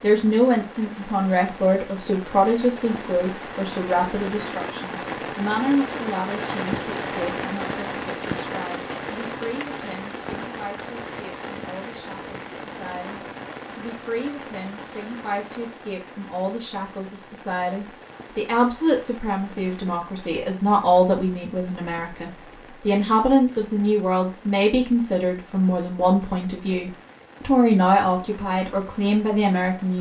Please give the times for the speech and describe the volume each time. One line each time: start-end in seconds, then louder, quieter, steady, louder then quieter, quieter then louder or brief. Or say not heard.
0.0-29.9 quieter then louder.